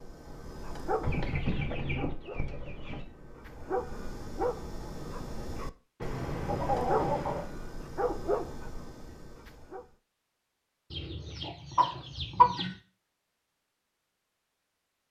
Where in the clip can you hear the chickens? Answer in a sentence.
You can hear the chickens from 1.0 to 3.0 s, from 6.0 to 7.5 s and from 10.9 to 12.8 s.